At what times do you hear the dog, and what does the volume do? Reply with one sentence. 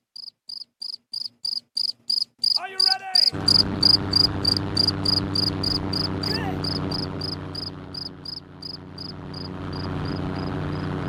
The dog can't be heard in this clip.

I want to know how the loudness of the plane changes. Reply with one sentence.
The volume of the plane goes down, then up.